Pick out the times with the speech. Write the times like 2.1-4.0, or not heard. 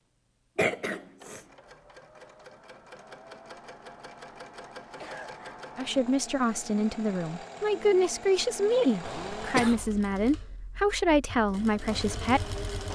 5.8-12.6.